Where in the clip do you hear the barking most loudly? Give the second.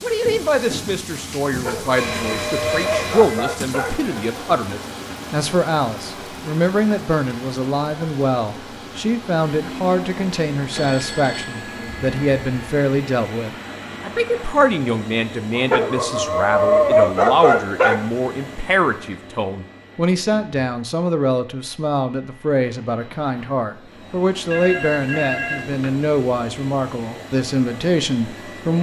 17 s.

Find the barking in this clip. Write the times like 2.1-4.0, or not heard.
1.4-4.0, 15.6-18.1.